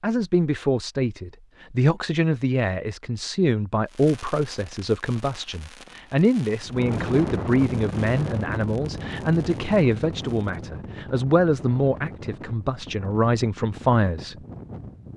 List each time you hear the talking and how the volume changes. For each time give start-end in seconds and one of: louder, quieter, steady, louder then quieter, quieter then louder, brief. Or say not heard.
0.0-14.3 steady.